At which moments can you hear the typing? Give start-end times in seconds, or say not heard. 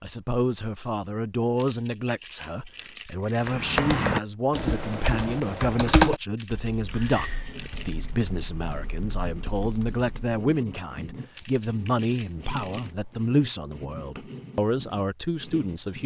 3.4-10.3.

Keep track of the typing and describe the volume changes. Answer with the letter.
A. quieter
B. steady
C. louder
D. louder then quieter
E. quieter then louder
A.